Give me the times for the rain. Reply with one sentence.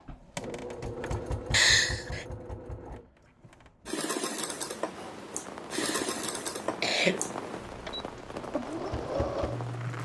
You can hear the rain from 4.4 to 10.0 s.